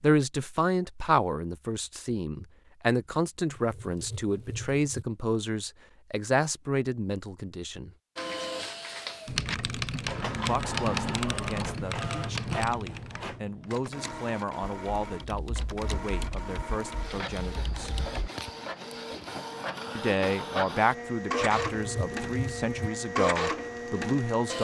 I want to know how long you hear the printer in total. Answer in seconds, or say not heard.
16 s.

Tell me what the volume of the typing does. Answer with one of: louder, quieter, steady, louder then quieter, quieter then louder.
quieter.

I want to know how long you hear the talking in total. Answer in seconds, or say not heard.
20 s.